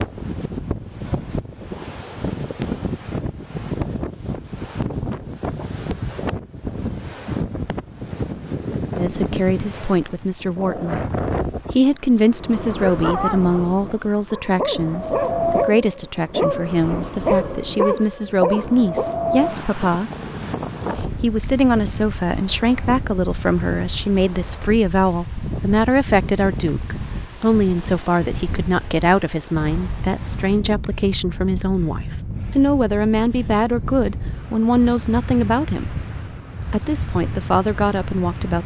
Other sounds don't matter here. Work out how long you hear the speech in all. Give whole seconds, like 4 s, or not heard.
27 s.